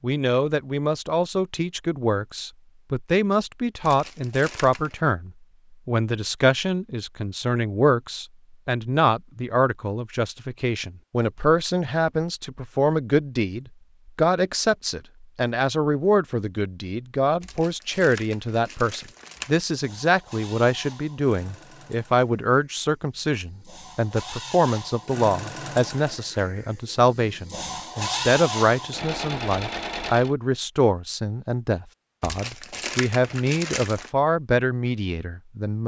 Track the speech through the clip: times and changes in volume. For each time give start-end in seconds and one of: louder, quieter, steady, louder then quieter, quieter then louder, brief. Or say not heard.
0.0-35.8 steady.